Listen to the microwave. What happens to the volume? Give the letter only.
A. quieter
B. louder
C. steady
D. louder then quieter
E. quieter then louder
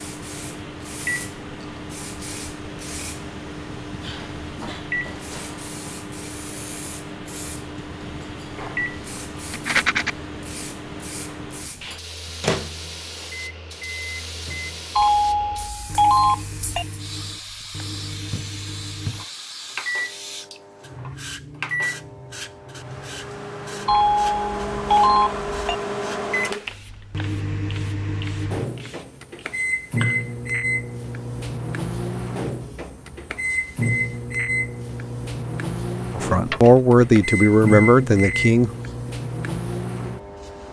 B.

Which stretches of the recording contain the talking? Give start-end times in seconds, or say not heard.
36.1-38.7.